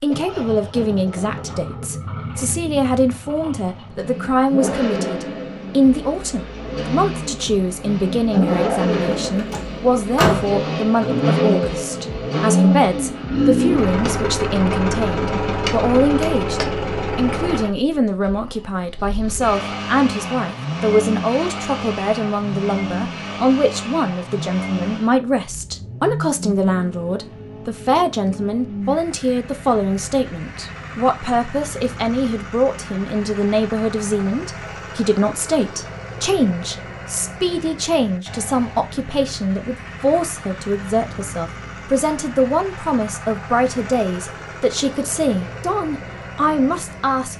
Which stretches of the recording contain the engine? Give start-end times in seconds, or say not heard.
0.0-47.3.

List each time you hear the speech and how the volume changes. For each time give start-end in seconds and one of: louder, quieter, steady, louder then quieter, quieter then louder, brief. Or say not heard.
0.0-47.3 steady.